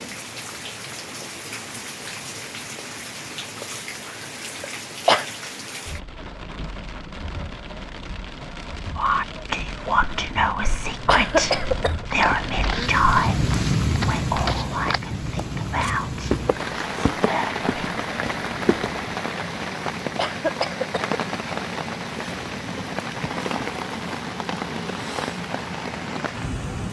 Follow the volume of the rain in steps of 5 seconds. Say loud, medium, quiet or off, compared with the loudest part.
medium, medium, loud, loud, loud, loud.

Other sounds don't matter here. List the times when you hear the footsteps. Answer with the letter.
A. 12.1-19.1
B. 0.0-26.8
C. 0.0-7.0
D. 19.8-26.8
A.